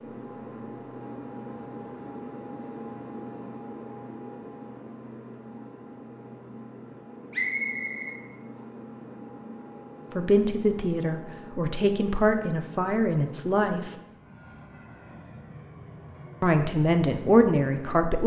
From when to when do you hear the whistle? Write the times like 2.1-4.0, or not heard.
7.3-8.2.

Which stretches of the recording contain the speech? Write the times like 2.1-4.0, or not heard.
10.2-13.9, 16.4-18.2.